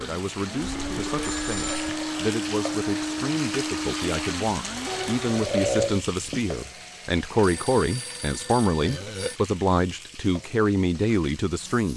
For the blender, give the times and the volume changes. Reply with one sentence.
The blender can be heard from 0.0 to 7.5 s, getting quieter.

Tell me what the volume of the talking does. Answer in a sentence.
The loudness of the talking goes up.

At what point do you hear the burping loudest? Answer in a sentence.
The loudest moment of the burping is at 6 seconds.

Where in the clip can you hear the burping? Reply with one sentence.
You can hear the burping from 0.6 to 2.2 s, from 4.6 to 6.4 s and from 8.8 to 9.3 s.